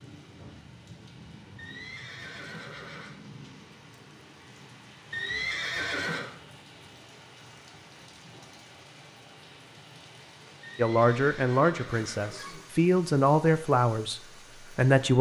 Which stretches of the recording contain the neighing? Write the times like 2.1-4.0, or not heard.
1.6-3.1, 5.1-6.3, 10.6-12.7.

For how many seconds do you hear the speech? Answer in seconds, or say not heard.
4 s.